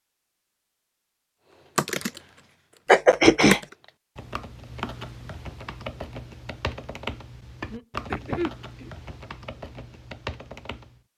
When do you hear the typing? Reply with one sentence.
You can hear the typing from 1.8 to 11.0 s.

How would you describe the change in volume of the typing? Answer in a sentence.
The volume of the typing goes down.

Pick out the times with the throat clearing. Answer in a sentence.
The throat clearing can be heard from 2.9 to 3.6 s and from 7.7 to 8.9 s.